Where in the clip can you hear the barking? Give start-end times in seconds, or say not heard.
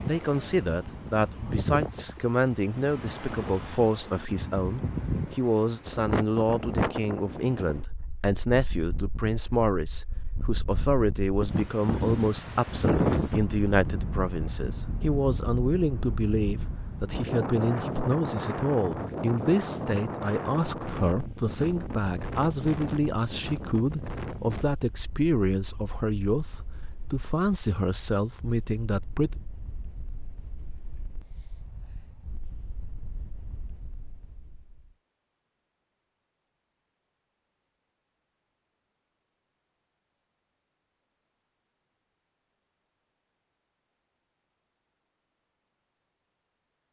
not heard.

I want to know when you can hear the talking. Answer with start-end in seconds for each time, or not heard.
0.1-29.4.